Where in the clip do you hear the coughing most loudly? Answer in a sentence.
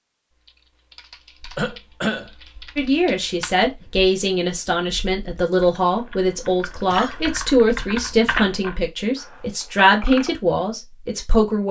The volume of the coughing peaks at 2 seconds.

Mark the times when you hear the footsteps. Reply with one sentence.
You can't hear the footsteps here.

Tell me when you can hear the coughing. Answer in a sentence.
The coughing can be heard from 1.6 to 2.3 s and from 6.3 to 7.2 s.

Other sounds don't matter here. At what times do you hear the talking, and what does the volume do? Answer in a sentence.
The talking can be heard from 2.8 to 11.6 s, at a steady volume.